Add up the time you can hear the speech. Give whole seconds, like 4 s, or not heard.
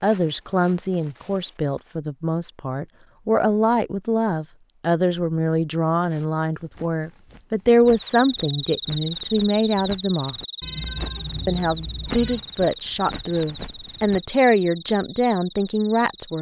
15 s.